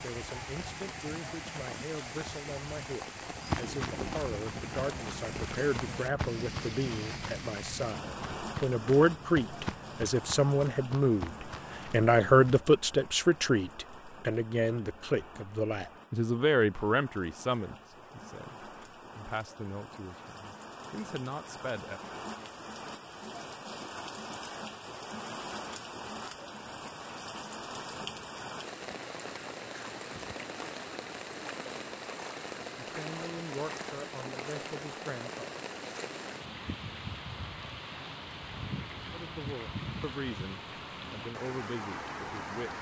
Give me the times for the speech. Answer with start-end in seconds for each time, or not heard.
0.0-22.0, 32.8-35.5, 39.1-42.7.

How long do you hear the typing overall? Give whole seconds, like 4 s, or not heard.
not heard.